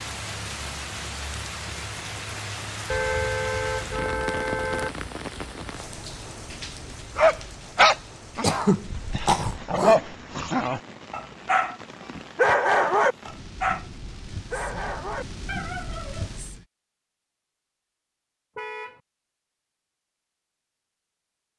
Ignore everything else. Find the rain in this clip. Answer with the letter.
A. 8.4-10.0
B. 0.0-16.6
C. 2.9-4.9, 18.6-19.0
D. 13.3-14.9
B.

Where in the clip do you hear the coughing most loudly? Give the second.
9 s.